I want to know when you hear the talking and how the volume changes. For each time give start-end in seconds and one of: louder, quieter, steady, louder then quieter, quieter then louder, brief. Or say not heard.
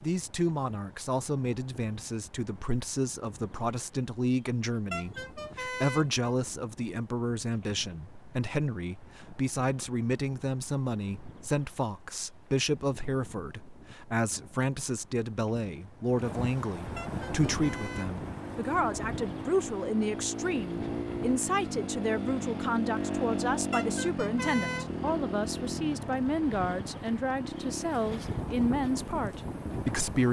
0.0-30.2 steady.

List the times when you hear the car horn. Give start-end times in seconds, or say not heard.
4.9-6.3, 16.9-18.1, 23.7-25.2.